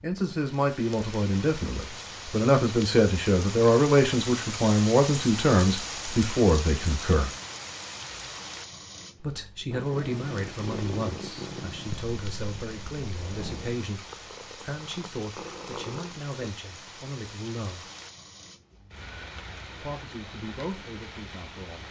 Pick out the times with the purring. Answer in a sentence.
The purring can be heard from 9.7 to 16.3 s.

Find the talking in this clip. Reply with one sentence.
You can hear the talking from 0.0 to 7.3 s, from 9.2 to 17.9 s and from 19.8 to 21.8 s.